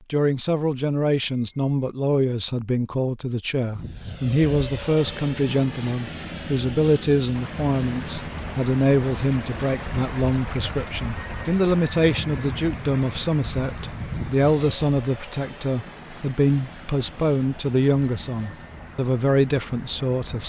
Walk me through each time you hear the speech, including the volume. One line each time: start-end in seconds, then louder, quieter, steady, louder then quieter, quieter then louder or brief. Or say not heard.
0.1-20.4 steady.